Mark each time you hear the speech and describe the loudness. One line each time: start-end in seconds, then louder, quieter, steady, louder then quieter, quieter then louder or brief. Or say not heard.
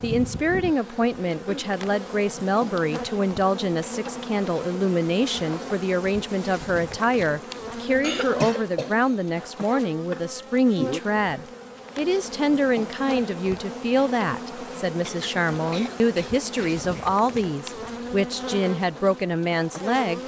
0.0-20.2 steady.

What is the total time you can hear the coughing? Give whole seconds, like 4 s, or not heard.
4 s.